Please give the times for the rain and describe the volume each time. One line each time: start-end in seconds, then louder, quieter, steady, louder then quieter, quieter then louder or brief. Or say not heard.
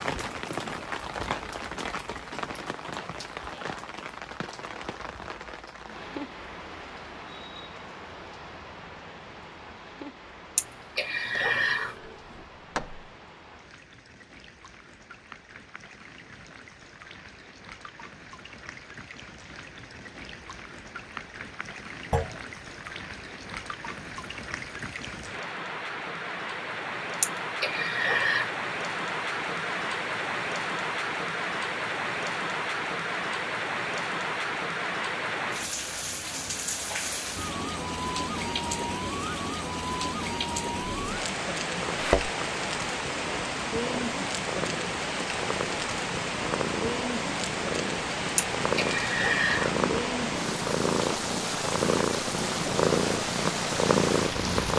0.0-54.7 quieter then louder.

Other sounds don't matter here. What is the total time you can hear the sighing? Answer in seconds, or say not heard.
4 s.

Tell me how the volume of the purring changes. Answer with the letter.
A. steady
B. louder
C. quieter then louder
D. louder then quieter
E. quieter
B.